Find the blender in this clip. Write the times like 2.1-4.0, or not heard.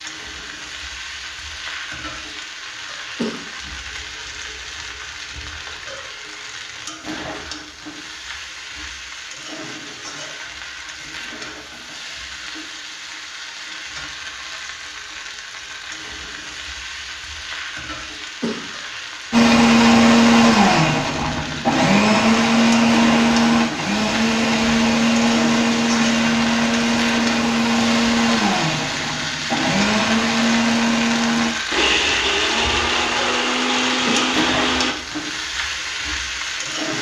19.3-35.0.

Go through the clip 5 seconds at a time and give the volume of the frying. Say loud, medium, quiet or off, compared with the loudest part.
medium, medium, medium, medium, loud, loud, loud, loud.